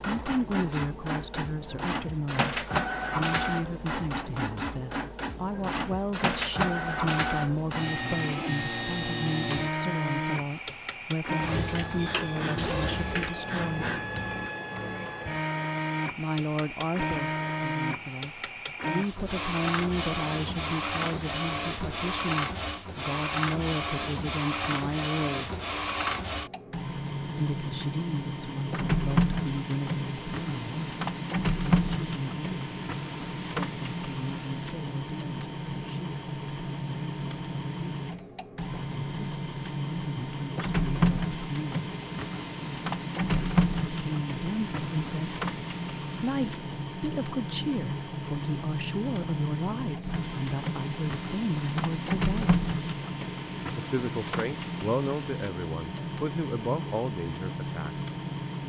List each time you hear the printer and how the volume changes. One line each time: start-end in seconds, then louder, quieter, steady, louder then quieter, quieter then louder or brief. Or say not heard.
0.0-58.6 steady.